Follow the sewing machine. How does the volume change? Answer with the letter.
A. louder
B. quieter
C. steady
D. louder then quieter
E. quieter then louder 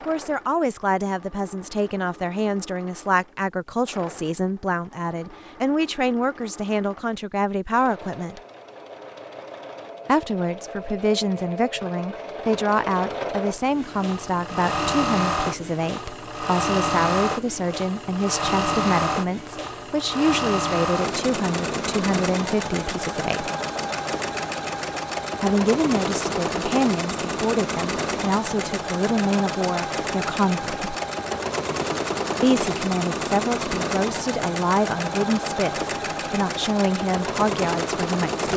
A.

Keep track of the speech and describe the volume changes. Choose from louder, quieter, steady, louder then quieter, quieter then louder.
steady.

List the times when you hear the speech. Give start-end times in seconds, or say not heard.
0.1-8.4, 10.1-23.5, 25.4-30.9, 32.4-38.5.